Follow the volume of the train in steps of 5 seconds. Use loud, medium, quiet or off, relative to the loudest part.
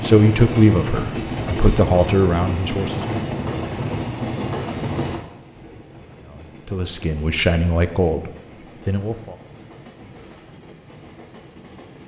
loud, quiet, quiet.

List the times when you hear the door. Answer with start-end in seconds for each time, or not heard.
not heard.